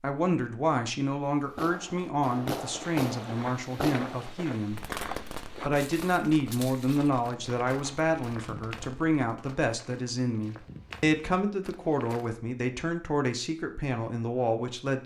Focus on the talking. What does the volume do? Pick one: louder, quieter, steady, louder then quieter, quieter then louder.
steady.